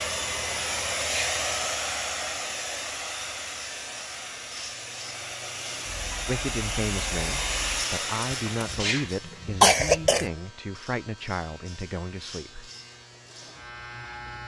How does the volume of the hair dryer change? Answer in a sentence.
The volume of the hair dryer goes down, then up.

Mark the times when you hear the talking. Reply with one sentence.
You can hear the talking from 6.2 to 12.7 s.